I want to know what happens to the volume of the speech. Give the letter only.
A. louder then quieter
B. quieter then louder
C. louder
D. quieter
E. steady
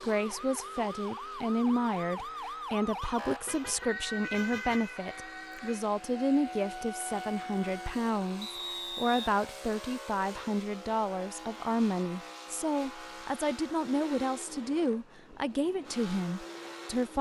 E.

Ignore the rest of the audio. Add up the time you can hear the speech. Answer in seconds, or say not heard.
17 s.